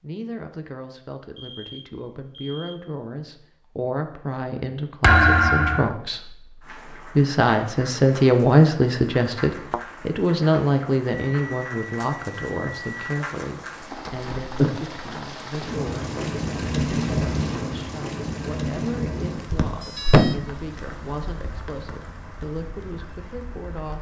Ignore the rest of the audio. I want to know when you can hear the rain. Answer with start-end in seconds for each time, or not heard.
6.6-23.9.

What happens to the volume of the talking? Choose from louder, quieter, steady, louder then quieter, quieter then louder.
louder then quieter.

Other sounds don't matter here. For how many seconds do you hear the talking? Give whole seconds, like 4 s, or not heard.
24 s.